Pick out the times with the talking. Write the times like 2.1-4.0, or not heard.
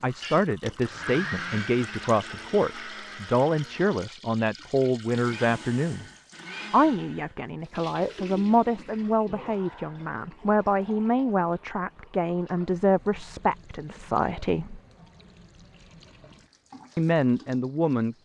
0.0-6.0, 6.7-14.8, 16.9-18.1.